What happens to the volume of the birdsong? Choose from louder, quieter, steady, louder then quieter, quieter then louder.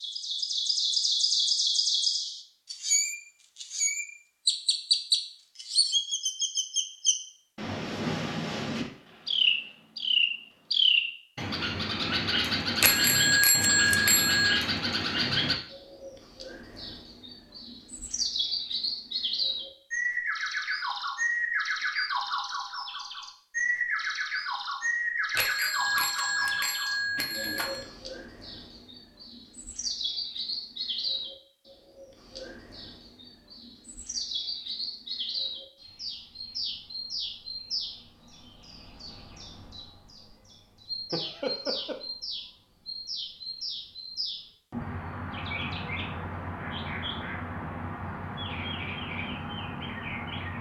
quieter.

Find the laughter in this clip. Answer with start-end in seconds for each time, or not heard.
41.1-42.0.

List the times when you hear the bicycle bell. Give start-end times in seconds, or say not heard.
12.8-14.6, 25.4-27.9.